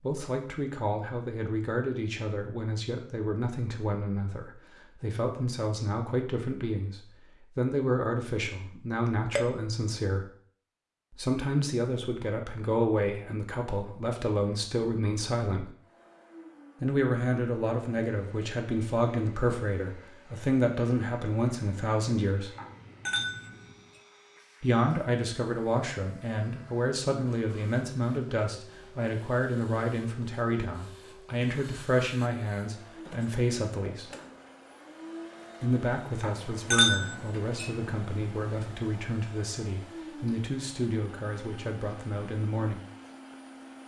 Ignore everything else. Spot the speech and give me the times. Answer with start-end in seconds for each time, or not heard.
0.0-10.3, 11.2-15.7, 16.8-22.5, 24.6-34.1, 35.6-42.8.